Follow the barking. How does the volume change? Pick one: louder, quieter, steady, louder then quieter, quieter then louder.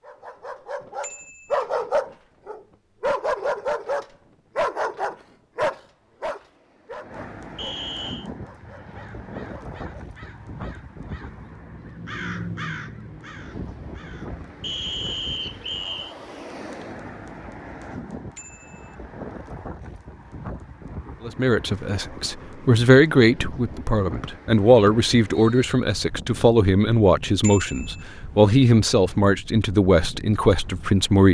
quieter.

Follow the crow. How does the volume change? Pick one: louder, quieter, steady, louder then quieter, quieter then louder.
louder then quieter.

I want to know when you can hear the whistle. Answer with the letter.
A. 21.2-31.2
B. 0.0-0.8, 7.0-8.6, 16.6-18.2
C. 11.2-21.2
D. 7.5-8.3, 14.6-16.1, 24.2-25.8
D.